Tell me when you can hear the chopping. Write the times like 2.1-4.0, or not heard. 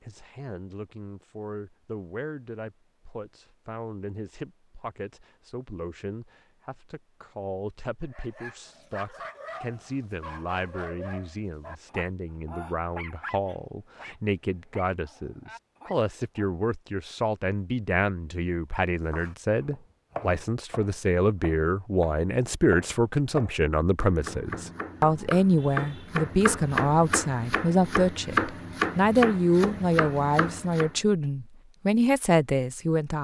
19.1-30.9.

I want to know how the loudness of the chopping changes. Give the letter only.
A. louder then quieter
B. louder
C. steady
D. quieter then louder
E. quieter
B.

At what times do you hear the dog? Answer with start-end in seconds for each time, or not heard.
8.0-16.5.